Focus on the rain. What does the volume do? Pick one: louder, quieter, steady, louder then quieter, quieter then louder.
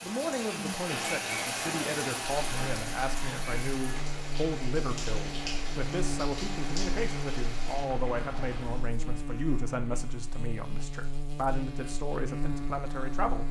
quieter.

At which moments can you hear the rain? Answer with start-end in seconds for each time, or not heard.
0.0-8.9.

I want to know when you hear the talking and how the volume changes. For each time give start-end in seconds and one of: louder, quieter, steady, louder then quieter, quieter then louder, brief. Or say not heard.
0.0-13.4 steady.